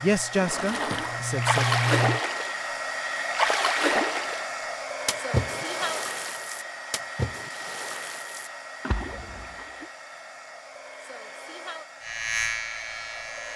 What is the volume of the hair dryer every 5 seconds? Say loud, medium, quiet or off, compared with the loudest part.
loud, loud, medium.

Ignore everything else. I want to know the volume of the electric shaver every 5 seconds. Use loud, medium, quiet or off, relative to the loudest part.
loud, off, loud.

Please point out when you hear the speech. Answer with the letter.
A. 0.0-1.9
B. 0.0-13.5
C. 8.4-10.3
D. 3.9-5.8
A.